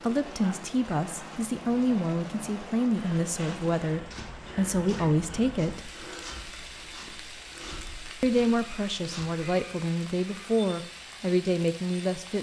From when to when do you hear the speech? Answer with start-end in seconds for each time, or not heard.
0.0-5.9, 8.2-12.3.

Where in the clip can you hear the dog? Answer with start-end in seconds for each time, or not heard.
not heard.